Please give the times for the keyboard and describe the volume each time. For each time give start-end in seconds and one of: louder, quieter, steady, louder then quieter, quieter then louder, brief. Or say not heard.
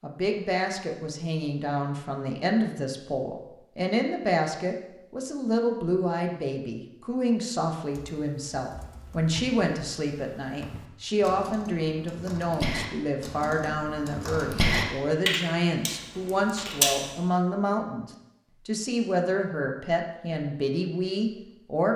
7.8-17.1 louder.